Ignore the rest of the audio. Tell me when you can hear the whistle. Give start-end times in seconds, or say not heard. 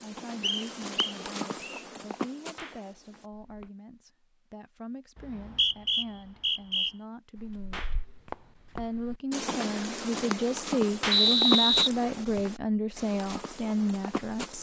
0.4-1.8, 5.2-6.9, 11.1-12.4.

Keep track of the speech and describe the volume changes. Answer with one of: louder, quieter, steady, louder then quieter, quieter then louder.
louder.